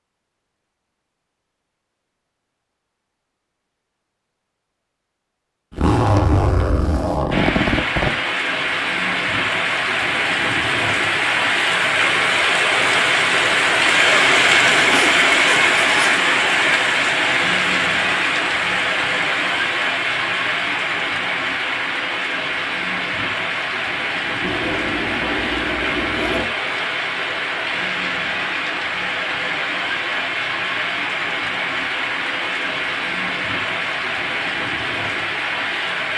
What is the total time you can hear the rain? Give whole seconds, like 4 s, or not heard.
29 s.